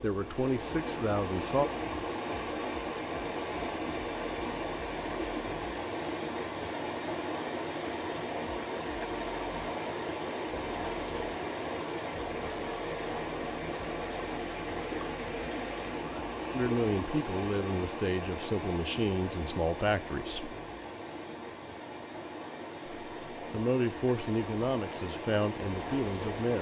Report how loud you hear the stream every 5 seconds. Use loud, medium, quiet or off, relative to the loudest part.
loud, loud, loud, loud, medium, loud.